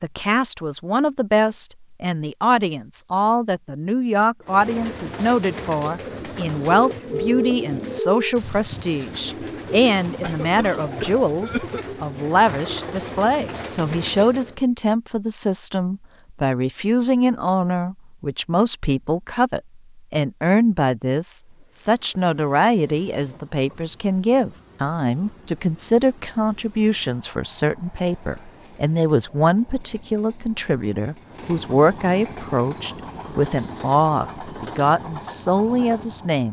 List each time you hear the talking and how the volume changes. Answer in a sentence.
The talking can be heard from 0.0 to 36.4 s, at a steady volume.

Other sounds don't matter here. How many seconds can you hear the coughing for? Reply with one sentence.
You can hear the coughing for 2 seconds altogether.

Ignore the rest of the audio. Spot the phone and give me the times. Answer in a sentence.
You can hear the phone from 6.7 to 8.3 s.